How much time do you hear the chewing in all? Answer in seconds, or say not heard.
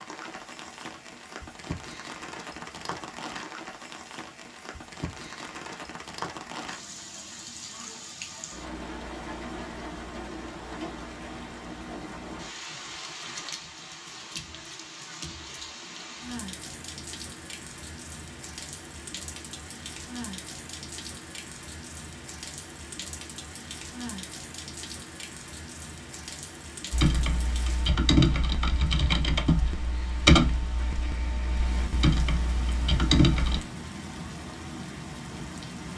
not heard.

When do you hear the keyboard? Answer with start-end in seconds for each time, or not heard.
26.9-33.6.